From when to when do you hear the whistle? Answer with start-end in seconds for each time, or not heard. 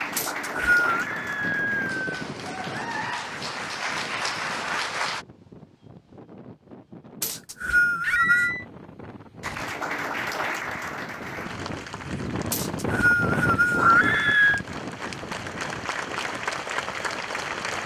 0.1-0.9, 7.2-8.6, 12.5-13.9.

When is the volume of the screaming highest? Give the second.
14 s.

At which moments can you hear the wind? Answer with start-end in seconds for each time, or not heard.
0.0-17.8.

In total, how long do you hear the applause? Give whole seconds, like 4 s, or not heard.
14 s.